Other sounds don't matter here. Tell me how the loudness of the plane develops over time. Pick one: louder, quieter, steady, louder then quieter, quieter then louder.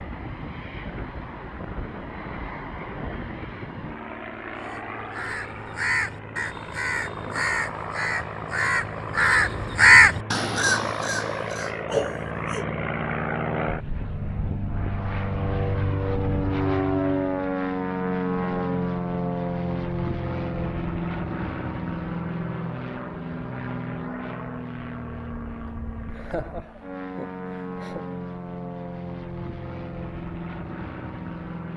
louder then quieter.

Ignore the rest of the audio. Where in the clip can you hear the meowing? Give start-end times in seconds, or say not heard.
not heard.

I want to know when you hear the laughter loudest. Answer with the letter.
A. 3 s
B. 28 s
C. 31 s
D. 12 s
D.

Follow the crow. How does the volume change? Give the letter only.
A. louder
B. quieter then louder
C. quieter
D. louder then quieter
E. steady
D.